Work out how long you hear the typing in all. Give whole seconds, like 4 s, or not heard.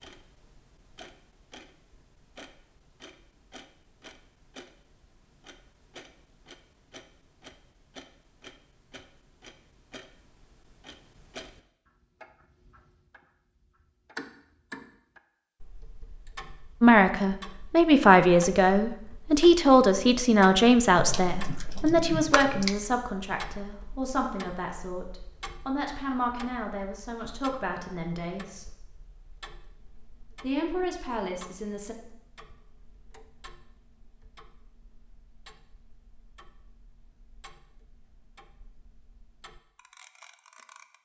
2 s.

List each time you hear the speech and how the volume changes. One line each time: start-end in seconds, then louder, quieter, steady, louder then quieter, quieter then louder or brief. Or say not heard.
16.8-28.7 quieter
30.4-31.9 brief.